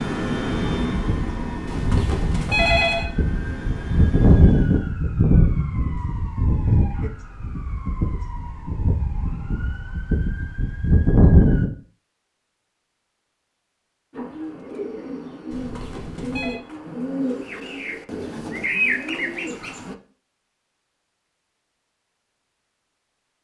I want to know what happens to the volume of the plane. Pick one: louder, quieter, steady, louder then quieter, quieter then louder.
quieter.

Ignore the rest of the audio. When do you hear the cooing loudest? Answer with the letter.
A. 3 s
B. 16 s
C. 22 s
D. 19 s
D.